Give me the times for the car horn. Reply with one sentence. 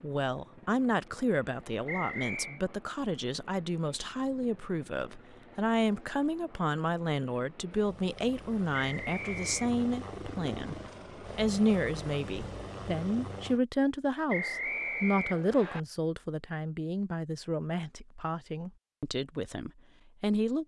The car horn can't be heard in this clip.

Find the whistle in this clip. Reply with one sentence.
The whistle can be heard from 1.9 to 2.6 s, from 8.8 to 9.7 s and from 14.2 to 15.8 s.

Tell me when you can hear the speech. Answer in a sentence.
The speech can be heard from 0.0 to 10.8 s and from 11.3 to 20.6 s.